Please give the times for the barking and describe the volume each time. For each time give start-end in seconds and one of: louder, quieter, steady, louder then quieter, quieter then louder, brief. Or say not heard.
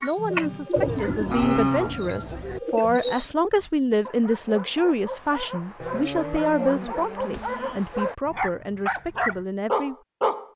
3.5-10.4 louder.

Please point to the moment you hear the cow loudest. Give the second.
2 s.